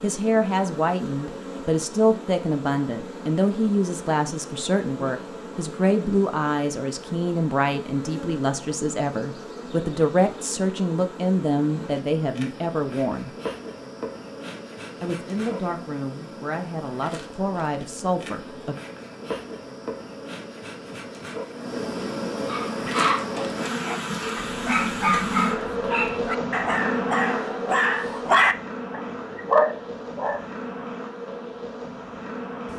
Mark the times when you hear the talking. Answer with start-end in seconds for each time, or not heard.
0.0-13.3, 15.0-18.8.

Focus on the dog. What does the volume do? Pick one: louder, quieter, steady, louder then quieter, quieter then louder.
louder.